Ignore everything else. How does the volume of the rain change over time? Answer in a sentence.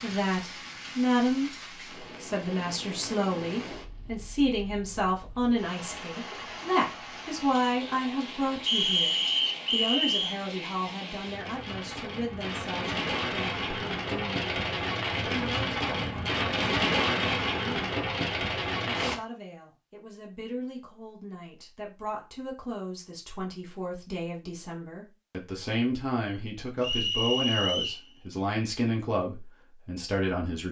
The loudness of the rain goes up.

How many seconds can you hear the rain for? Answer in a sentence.
You can hear the rain for 19 seconds altogether.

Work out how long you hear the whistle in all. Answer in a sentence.
You can hear the whistle for 3 seconds altogether.